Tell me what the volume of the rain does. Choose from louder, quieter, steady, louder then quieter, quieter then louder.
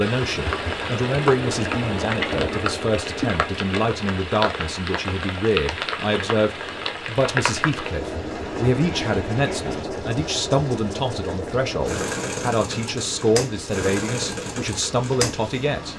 quieter.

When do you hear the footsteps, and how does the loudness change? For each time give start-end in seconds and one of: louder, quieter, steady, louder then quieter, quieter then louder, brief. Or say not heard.
not heard.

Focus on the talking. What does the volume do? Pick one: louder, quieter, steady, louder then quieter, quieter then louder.
steady.